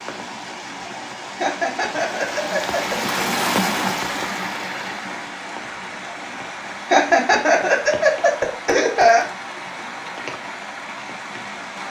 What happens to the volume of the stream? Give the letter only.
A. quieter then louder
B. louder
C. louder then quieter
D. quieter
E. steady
C.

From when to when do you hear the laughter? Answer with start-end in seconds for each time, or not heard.
1.4-3.2, 6.8-9.2.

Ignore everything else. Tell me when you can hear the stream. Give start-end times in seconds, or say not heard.
0.0-11.8.